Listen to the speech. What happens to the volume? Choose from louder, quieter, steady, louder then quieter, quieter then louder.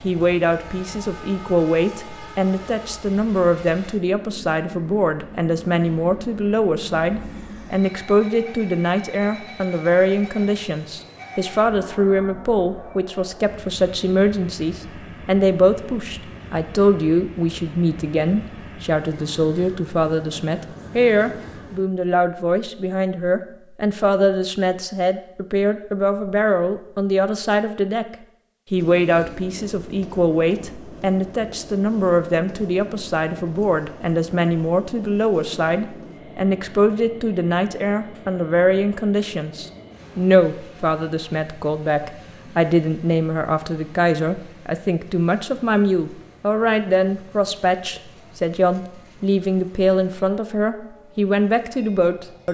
steady.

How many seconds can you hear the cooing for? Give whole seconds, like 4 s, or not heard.
not heard.